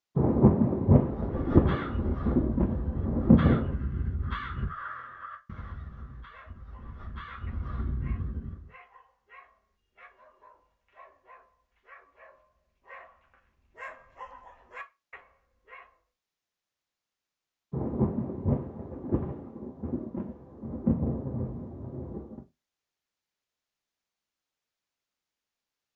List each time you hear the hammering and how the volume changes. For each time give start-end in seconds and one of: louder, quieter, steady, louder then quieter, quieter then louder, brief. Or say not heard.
not heard.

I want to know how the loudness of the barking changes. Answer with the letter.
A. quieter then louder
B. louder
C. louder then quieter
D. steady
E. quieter
B.